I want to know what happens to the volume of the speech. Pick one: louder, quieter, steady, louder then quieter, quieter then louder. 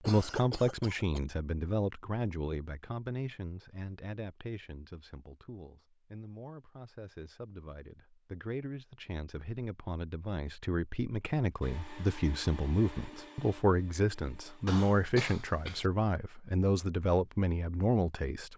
quieter then louder.